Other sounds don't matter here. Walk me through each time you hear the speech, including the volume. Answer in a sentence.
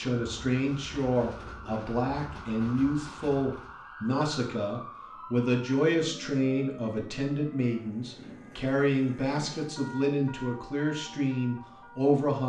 The speech can be heard from 0.0 to 12.4 s, at a steady volume.